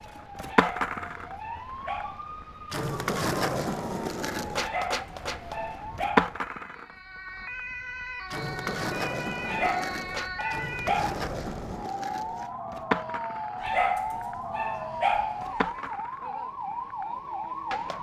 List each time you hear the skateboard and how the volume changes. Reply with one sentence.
You can hear the skateboard from 0.1 to 17.9 s, getting quieter.